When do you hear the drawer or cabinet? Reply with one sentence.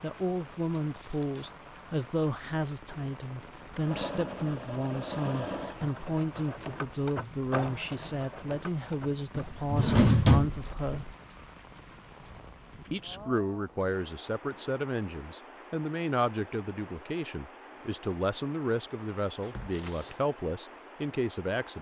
You can hear the drawer or cabinet from 9.3 to 11.1 s.